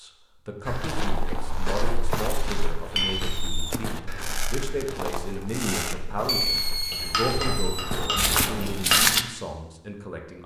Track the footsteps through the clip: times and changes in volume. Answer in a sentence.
You can hear the footsteps from 0.7 to 9.2 s, getting quieter then louder.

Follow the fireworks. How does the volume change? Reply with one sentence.
The volume of the fireworks goes up, then down.